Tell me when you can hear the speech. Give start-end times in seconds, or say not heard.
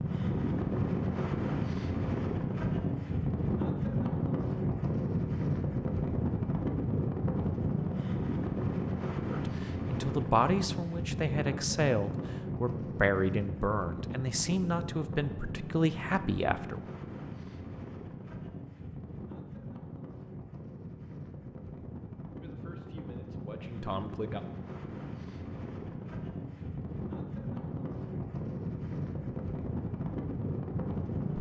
9.3-16.9, 22.4-24.4.